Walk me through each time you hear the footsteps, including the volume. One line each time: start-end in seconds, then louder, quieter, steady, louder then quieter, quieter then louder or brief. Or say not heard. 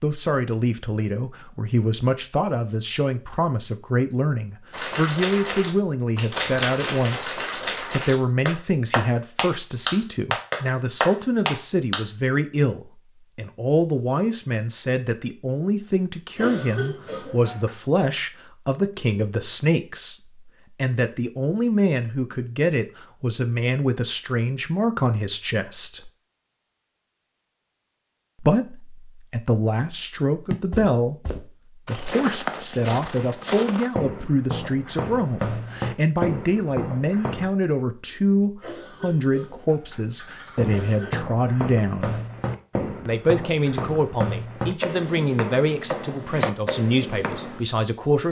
30.5-37.5 louder
40.5-47.6 steady.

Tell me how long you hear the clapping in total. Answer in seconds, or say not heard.
7 s.